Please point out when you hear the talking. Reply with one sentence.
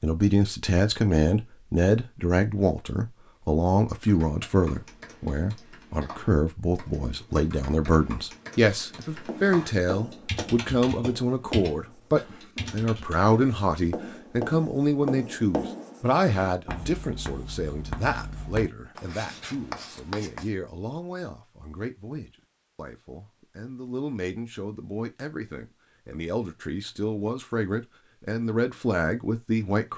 The talking can be heard from 0.0 to 29.9 s.